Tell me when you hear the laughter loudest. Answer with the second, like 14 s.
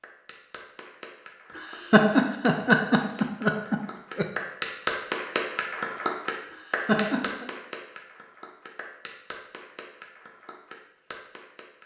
2 s.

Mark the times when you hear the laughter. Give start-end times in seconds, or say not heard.
1.6-4.2, 6.5-7.5.